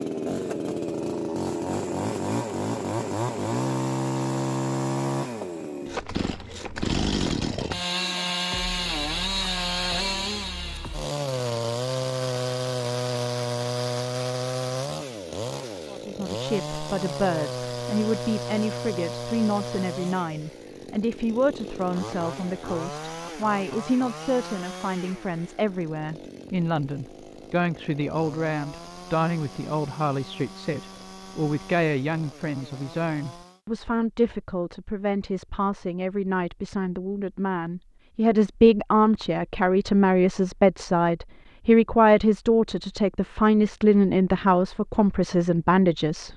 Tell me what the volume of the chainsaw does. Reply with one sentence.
The loudness of the chainsaw goes down.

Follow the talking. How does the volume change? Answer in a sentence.
The volume of the talking goes up.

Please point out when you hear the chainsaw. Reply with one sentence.
The chainsaw can be heard from 0.0 to 33.6 s.